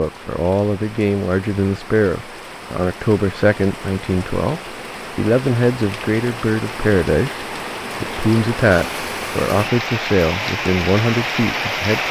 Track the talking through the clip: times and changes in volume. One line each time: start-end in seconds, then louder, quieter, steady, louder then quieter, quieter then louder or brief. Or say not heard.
0.0-12.0 steady.